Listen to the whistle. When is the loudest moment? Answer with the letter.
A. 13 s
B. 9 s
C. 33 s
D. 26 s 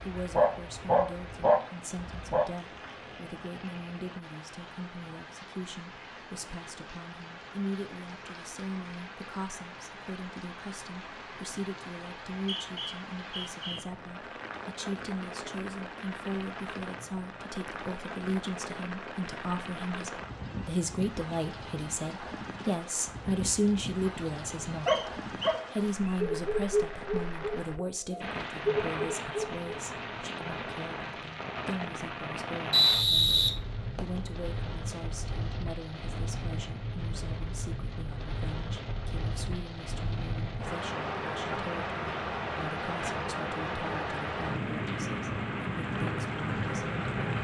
C.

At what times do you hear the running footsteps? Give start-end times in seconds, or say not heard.
not heard.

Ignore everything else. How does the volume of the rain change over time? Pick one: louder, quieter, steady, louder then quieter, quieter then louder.
louder.